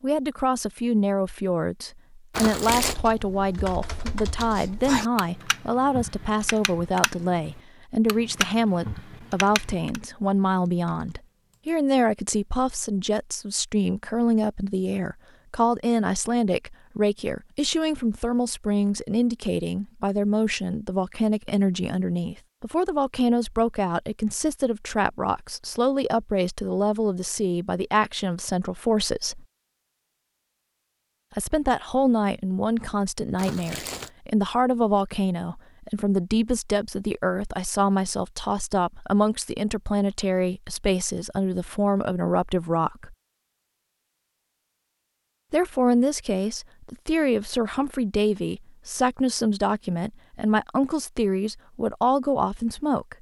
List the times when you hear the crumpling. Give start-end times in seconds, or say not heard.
2.3-3.0, 33.4-34.1.